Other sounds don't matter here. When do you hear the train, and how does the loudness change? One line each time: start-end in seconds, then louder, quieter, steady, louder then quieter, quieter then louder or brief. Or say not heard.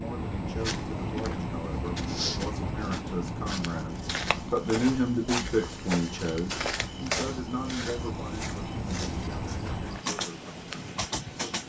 0.0-11.6 quieter then louder.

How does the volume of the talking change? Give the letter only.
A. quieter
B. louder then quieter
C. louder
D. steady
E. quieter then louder
B.